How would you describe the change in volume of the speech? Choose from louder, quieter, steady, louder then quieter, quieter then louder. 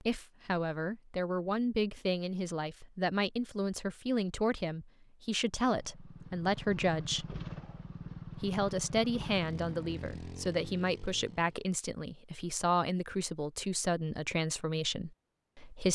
steady.